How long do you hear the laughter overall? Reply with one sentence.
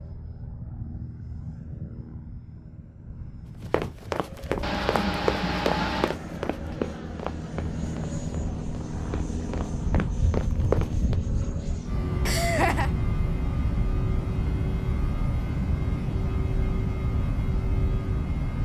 The laughter can be heard for 2 seconds in total.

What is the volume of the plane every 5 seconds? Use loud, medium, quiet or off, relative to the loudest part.
medium, loud, loud, loud.